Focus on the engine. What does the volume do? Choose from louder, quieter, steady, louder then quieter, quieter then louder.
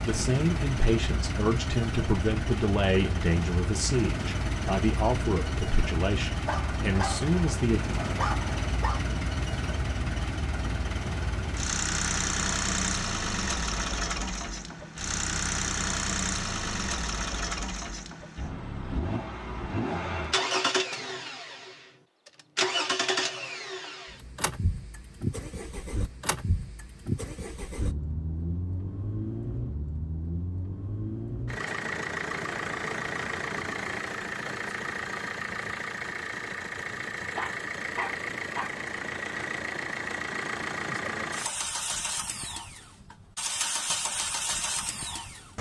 steady.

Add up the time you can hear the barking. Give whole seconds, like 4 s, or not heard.
4 s.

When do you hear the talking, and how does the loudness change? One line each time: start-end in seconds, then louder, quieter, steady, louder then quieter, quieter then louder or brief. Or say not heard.
0.0-7.8 steady.